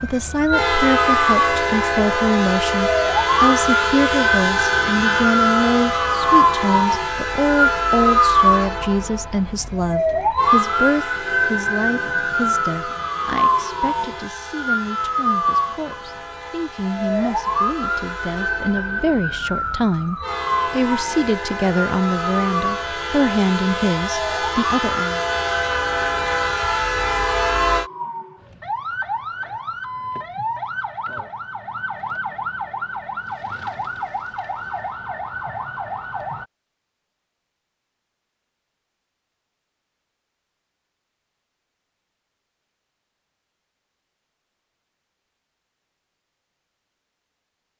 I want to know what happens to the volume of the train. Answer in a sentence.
The volume of the train goes down, then up.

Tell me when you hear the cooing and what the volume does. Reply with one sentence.
The cooing can't be heard in this clip.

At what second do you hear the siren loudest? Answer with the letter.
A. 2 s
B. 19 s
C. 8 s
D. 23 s
C.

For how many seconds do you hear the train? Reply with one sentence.
You can hear the train for 28 seconds altogether.